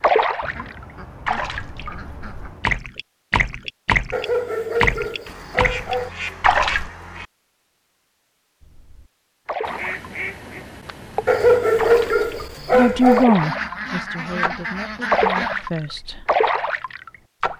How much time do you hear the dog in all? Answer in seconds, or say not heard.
4 s.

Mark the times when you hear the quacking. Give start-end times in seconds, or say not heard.
0.4-2.8, 5.2-7.2, 9.6-11.6, 13.3-15.7.